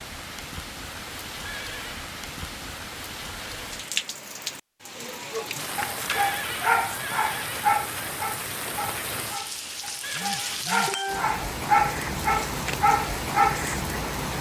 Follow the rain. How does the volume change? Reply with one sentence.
The volume of the rain goes up.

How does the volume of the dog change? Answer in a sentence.
The volume of the dog goes down, then up.